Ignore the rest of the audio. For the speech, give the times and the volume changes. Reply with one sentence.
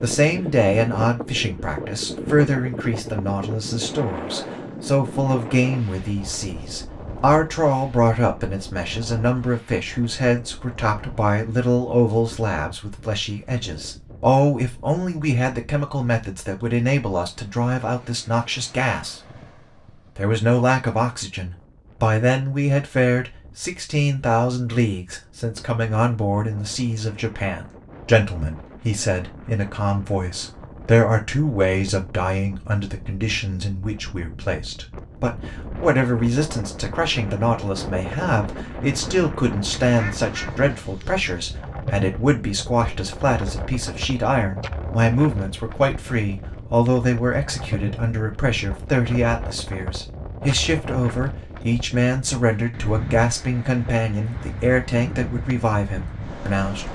The speech can be heard from 0.0 to 19.4 s, at a steady volume; and from 20.1 to 56.8 s, at a steady volume.